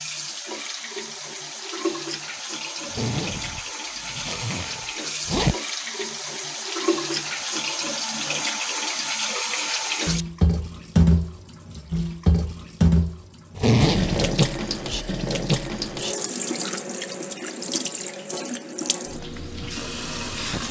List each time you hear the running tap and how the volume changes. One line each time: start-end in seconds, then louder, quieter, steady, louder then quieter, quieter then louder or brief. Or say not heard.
0.0-20.6 louder then quieter.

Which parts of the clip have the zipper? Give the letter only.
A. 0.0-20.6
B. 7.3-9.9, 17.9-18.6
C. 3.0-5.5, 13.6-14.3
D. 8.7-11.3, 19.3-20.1
C.